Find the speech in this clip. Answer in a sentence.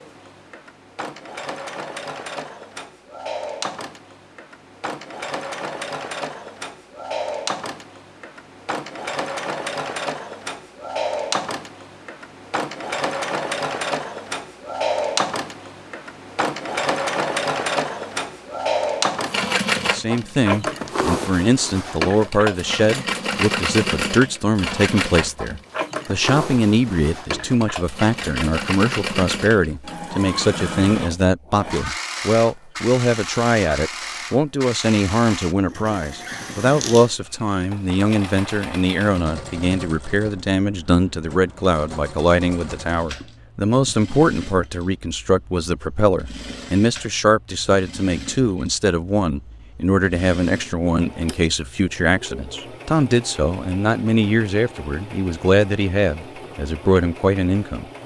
You can hear the speech from 19.8 to 57.9 s.